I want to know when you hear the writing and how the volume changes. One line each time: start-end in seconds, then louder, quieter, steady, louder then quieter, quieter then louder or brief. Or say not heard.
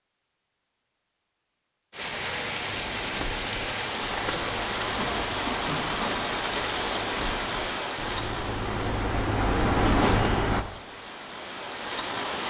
2.7-10.7 louder.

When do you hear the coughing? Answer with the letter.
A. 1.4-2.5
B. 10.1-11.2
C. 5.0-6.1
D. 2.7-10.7
C.